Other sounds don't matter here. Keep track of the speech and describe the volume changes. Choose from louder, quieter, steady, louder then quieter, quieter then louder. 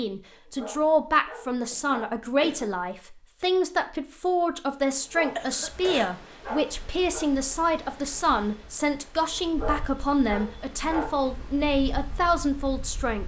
steady.